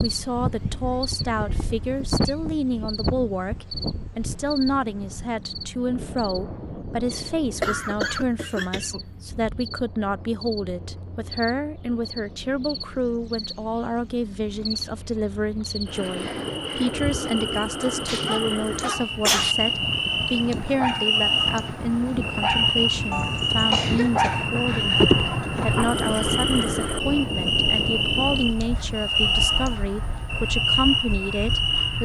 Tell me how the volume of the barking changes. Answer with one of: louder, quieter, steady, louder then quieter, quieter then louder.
louder.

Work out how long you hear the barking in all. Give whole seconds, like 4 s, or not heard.
8 s.